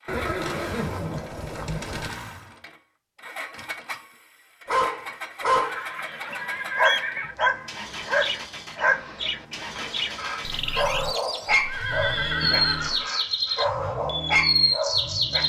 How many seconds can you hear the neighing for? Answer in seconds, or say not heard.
5 s.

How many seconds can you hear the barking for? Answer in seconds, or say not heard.
11 s.